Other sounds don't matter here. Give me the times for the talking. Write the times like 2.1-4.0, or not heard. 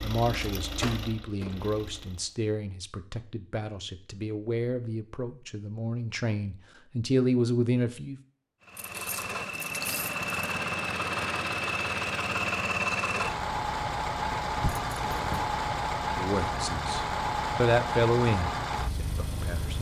0.0-8.2, 16.1-19.7.